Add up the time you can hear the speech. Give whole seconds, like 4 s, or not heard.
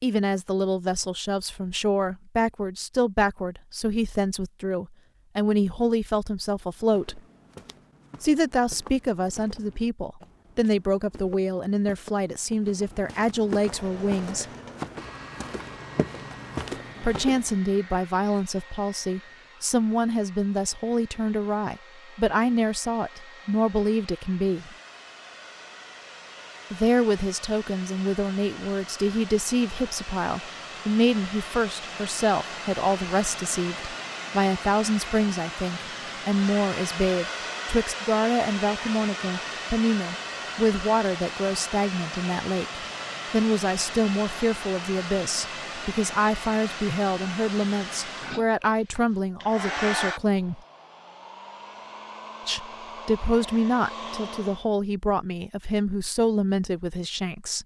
50 s.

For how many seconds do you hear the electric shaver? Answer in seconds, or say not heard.
not heard.